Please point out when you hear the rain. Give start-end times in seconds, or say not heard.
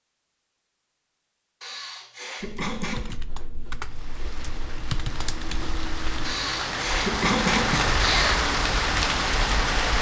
3.8-9.9.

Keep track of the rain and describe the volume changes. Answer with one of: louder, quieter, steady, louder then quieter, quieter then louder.
louder.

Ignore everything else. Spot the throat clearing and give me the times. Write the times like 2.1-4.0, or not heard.
1.6-3.2, 6.2-8.4.